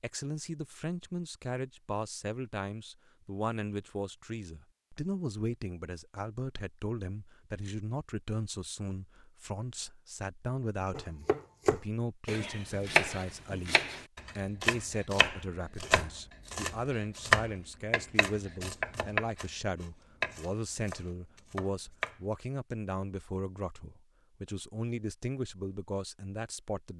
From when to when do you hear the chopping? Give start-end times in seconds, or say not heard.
10.9-22.1.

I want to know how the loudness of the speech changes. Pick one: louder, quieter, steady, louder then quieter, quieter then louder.
steady.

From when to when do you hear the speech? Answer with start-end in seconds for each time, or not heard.
0.0-26.9.